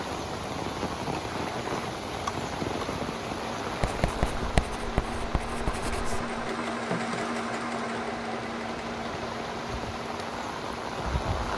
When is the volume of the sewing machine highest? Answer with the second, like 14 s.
7 s.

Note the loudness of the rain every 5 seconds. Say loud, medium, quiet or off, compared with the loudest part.
loud, medium, loud.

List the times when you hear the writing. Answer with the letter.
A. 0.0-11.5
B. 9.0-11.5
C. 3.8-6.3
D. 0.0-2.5
C.